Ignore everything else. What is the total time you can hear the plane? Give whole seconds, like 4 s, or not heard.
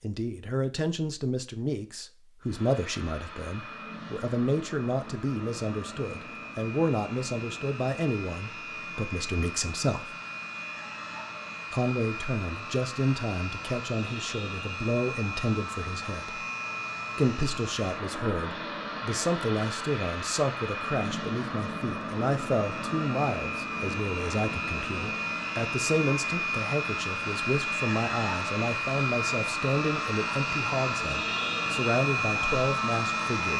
31 s.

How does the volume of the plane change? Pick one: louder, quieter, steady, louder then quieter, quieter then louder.
louder.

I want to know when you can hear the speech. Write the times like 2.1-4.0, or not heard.
0.0-10.2, 11.7-16.4, 17.1-33.5.